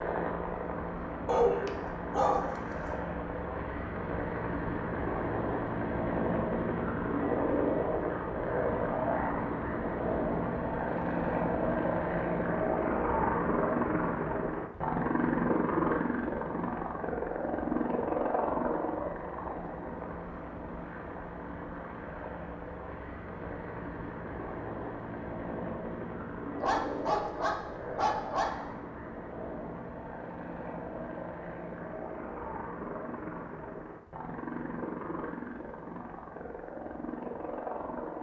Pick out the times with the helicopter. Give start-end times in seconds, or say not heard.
0.0-38.1.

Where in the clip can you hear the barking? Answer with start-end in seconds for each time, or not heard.
1.2-2.5, 26.6-28.5.